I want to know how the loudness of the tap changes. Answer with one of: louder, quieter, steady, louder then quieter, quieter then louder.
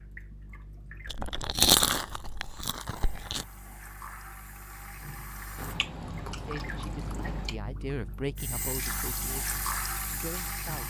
louder.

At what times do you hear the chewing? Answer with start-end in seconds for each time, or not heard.
1.1-3.5, 5.5-7.5.